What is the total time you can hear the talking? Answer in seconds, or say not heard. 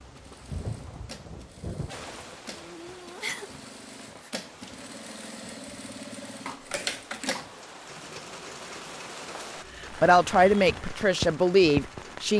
2 s.